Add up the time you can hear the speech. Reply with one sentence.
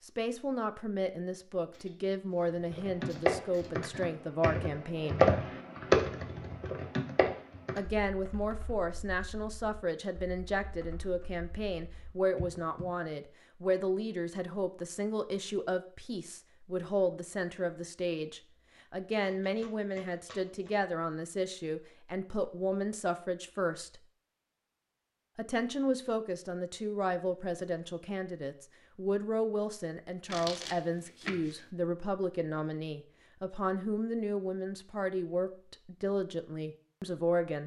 The speech can be heard for 34 seconds in total.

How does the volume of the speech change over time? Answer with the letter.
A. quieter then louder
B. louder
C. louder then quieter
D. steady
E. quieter
D.